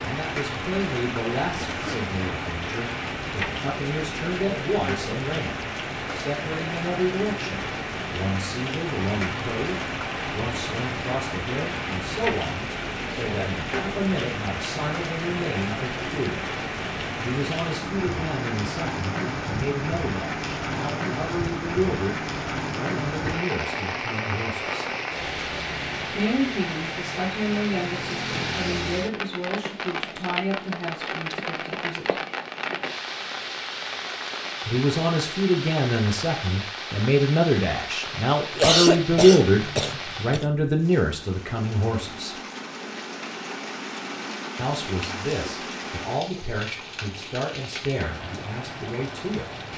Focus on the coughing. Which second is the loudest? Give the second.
39 s.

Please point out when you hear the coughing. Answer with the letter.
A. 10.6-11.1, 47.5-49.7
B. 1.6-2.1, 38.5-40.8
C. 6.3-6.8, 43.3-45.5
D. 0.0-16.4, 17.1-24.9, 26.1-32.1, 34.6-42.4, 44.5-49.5
B.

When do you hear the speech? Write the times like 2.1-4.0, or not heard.
0.0-16.4, 17.1-24.9, 26.1-32.1, 34.6-42.4, 44.5-49.5.